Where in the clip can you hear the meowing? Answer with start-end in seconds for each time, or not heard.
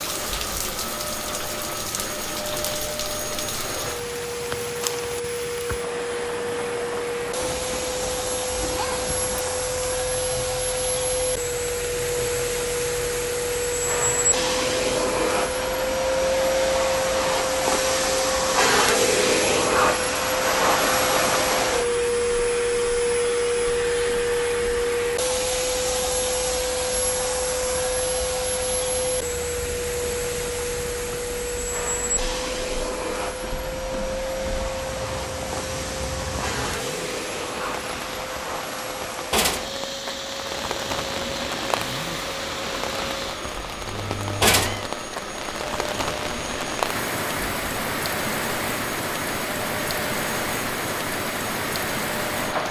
7.4-9.4, 43.9-44.9.